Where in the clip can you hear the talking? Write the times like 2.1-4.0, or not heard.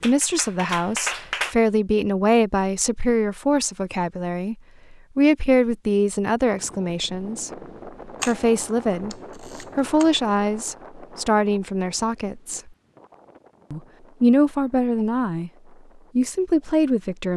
0.0-12.7, 13.7-15.5, 16.1-17.3.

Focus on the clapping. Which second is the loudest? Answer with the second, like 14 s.
1 s.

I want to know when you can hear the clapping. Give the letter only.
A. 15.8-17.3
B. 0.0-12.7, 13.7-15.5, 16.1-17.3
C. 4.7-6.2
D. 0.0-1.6
D.